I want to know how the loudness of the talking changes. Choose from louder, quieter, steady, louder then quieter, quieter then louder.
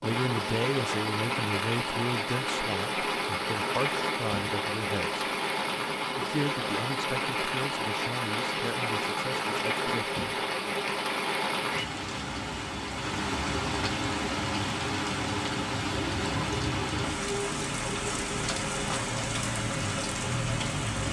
quieter.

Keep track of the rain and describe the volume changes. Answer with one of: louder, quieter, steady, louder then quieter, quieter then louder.
steady.